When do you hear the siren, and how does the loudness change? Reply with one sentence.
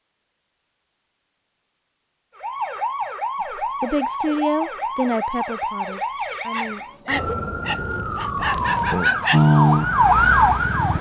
The siren can be heard from 2.4 to 10.9 s, getting louder.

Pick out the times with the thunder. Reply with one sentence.
You can't hear the thunder here.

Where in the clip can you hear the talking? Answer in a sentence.
You can hear the talking from 3.6 to 7.2 s.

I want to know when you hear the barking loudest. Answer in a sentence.
The loudest moment of the barking is at 9 seconds.